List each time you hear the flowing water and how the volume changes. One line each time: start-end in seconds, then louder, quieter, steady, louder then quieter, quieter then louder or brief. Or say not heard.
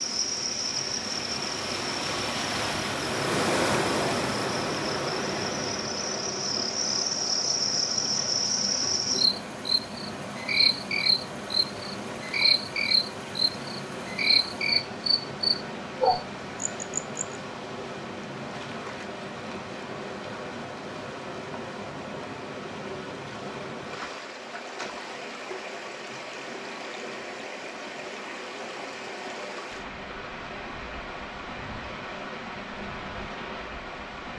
0.0-34.3 quieter.